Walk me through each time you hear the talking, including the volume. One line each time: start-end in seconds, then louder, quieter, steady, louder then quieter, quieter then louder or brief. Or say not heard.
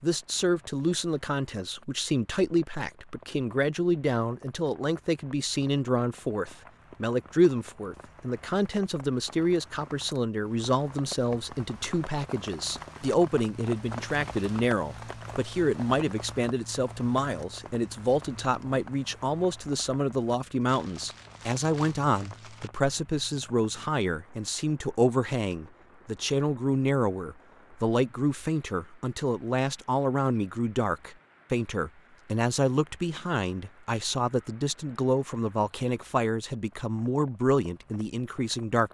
0.0-38.9 steady.